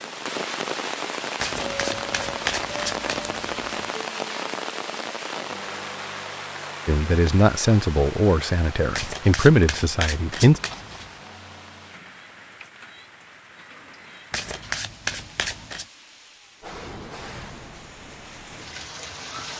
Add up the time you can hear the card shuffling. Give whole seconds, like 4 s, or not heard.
6 s.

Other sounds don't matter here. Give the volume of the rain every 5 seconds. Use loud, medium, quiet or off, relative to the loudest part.
loud, medium, quiet, medium.